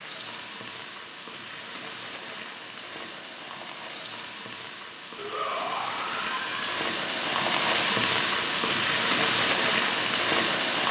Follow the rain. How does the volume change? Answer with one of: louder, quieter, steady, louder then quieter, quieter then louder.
louder.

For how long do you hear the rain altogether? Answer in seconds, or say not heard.
11 s.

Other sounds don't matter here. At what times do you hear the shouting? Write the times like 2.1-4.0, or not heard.
5.2-6.8.